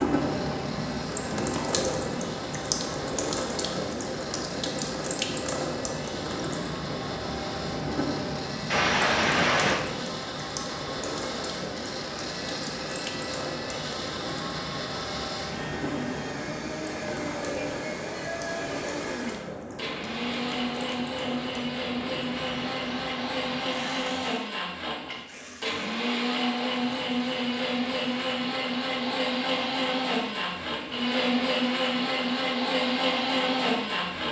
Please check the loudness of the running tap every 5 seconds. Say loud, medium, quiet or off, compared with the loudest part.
loud, loud, medium, medium, medium, quiet, quiet.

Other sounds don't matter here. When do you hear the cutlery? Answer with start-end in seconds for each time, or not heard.
not heard.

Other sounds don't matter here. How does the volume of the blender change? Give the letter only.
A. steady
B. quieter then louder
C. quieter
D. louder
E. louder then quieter
D.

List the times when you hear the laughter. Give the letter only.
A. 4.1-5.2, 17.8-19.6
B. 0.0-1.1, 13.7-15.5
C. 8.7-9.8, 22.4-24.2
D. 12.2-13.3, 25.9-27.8
C.